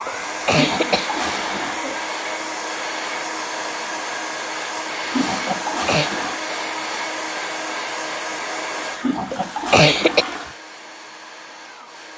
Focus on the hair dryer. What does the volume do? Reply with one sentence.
The loudness of the hair dryer goes down.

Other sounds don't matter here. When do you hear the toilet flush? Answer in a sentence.
You can hear the toilet flush from 0.5 to 1.8 s, from 5.0 to 6.4 s and from 8.9 to 10.6 s.